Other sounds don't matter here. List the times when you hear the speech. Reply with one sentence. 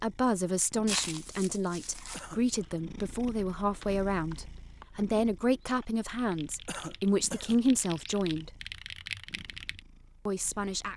You can hear the speech from 0.0 to 8.5 s and from 10.2 to 10.9 s.